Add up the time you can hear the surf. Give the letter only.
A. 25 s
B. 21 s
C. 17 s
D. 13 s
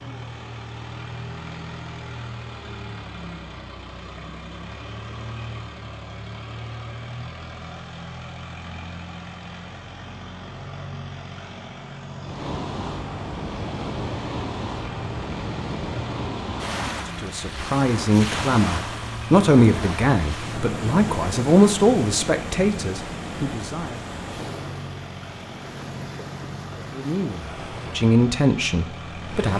C.